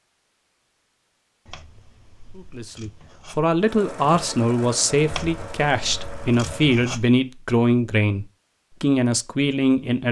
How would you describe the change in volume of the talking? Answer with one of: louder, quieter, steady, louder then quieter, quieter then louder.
steady.